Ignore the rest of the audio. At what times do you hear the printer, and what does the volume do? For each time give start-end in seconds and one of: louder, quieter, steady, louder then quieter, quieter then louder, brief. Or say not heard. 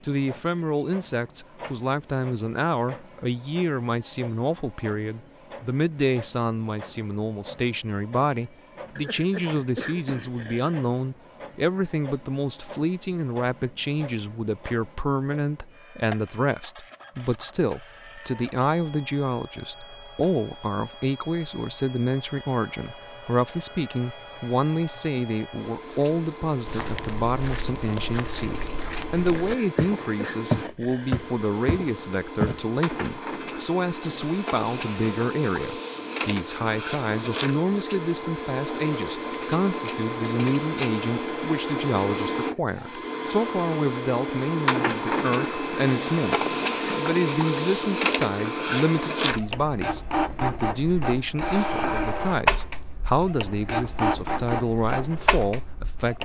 0.0-56.2 louder.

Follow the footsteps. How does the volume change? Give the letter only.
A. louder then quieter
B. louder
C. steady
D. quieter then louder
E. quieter
A.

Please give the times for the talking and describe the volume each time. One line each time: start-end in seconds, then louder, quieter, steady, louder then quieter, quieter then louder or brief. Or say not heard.
0.0-56.2 steady.